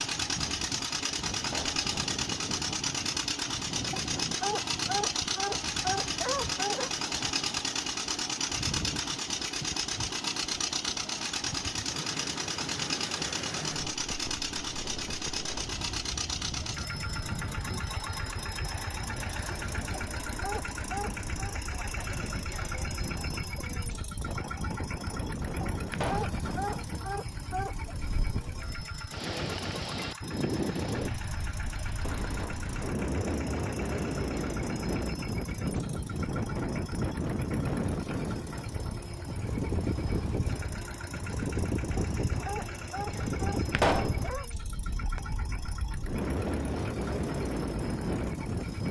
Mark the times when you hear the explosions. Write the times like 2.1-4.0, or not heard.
1.4-1.9, 25.9-26.4, 43.7-44.2.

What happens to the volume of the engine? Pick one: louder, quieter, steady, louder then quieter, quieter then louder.
quieter.